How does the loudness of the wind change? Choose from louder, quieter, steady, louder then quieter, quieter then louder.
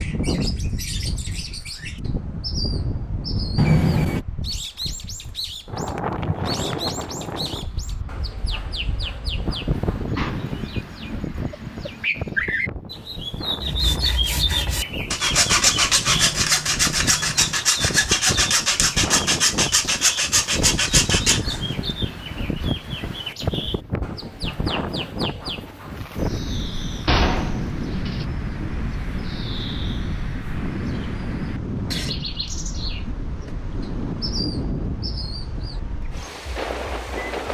steady.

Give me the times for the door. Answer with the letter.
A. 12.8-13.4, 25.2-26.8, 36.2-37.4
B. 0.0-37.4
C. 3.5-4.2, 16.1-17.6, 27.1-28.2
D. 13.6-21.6
C.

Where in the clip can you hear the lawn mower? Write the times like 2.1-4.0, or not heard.
not heard.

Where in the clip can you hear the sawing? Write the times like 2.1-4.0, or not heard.
13.6-21.6.